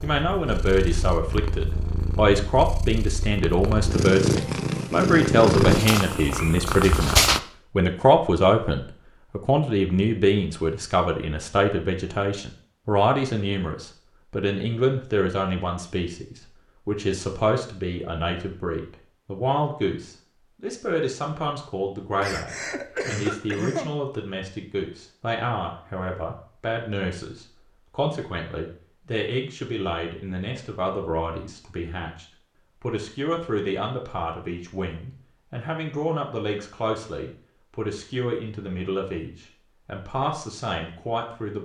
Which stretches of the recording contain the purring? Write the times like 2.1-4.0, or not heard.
0.0-7.4.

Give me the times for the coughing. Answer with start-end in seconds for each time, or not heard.
22.2-23.9.